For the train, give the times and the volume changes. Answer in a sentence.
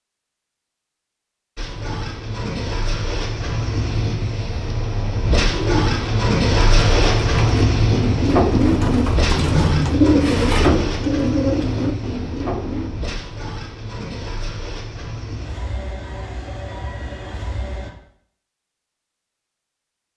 You can hear the train from 1.6 to 17.9 s, getting louder then quieter.